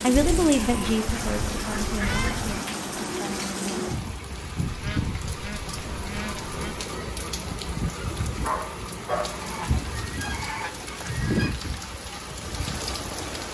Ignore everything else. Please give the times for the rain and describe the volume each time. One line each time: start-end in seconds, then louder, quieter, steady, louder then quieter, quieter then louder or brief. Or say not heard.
0.0-13.4 steady.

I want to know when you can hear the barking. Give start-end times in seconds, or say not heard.
8.4-9.8.